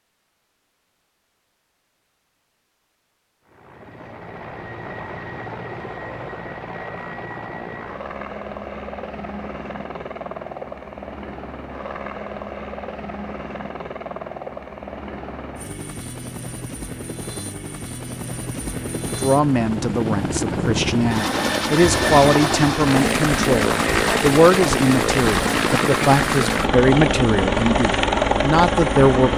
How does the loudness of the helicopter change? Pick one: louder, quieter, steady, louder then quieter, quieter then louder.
louder.